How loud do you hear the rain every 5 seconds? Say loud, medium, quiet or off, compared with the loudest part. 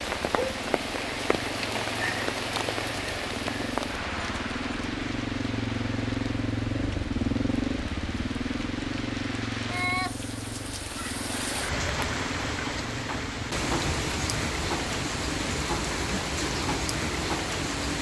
loud, medium, loud, loud.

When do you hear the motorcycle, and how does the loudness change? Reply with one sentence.
You can hear the motorcycle from 0.0 to 17.9 s, getting louder then quieter.